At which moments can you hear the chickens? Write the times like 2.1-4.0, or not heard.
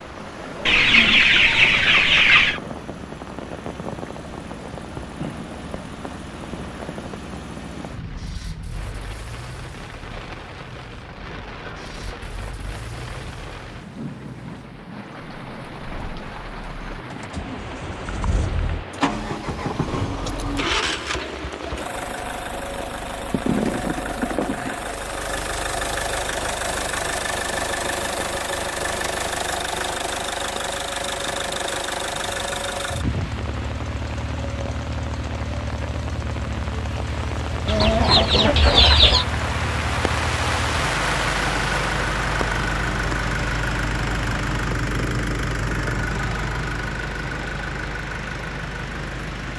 0.7-2.6, 37.6-39.2.